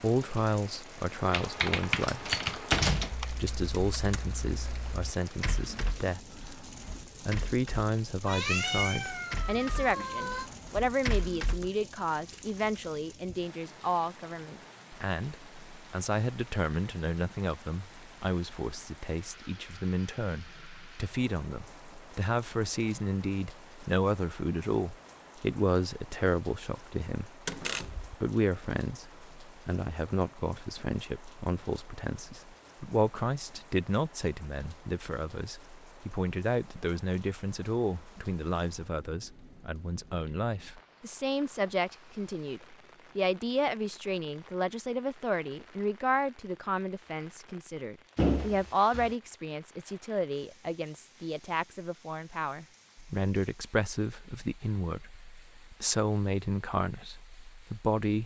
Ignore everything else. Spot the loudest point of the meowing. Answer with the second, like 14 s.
9 s.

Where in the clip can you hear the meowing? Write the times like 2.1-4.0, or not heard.
8.2-10.5.